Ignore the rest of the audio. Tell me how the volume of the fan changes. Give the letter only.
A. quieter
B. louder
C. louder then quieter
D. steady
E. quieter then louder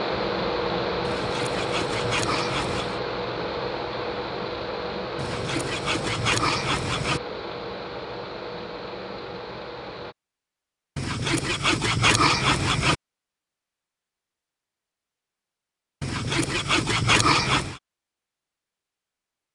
A.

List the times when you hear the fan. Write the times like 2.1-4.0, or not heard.
0.0-10.2.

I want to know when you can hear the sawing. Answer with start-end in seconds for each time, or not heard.
1.0-3.0, 5.2-7.2, 10.9-12.9, 16.0-17.8.